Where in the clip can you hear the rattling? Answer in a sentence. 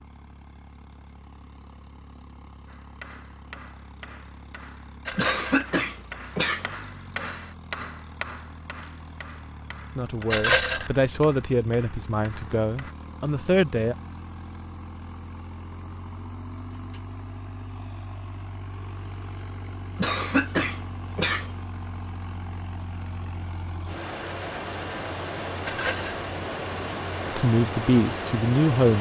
The rattling can be heard from 5.0 to 5.7 s, from 10.3 to 10.9 s and from 25.6 to 26.2 s.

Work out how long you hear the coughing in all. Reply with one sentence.
You can hear the coughing for 3 seconds altogether.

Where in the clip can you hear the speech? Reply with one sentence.
You can hear the speech from 9.9 to 13.9 s and from 27.2 to 28.9 s.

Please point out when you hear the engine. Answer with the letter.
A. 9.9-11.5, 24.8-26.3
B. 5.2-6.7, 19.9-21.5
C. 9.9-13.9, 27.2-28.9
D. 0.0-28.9
D.